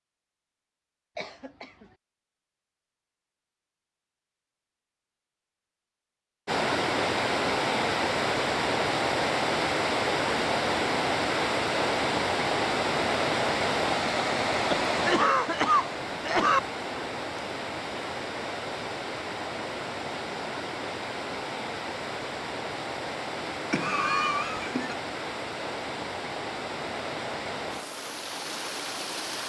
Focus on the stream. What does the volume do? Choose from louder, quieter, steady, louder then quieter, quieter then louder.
quieter.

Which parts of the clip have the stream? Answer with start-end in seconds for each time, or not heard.
6.5-29.4.